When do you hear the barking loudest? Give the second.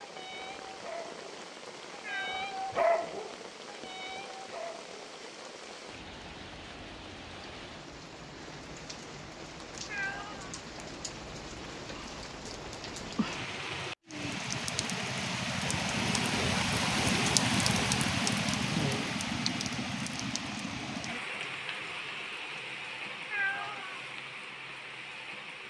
3 s.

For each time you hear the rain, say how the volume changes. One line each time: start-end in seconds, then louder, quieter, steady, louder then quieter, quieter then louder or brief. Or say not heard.
0.0-25.6 louder then quieter.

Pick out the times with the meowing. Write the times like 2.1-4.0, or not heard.
2.0-2.5, 9.8-10.6, 23.3-24.0.